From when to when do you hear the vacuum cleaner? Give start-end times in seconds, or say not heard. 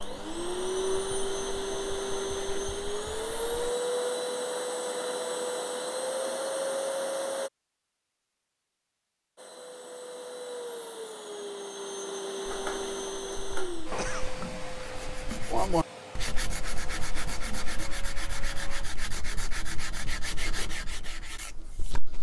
0.0-7.5, 9.3-18.9.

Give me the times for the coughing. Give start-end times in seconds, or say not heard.
13.9-14.3.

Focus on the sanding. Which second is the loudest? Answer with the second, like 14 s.
16 s.